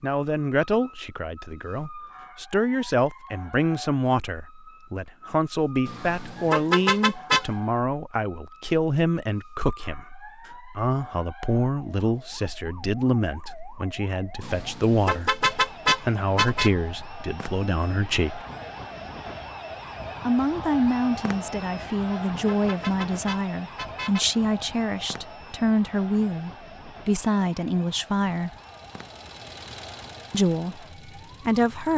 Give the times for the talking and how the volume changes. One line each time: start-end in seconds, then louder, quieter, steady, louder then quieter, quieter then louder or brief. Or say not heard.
0.0-18.4 steady
20.2-28.5 steady
30.3-31.9 brief.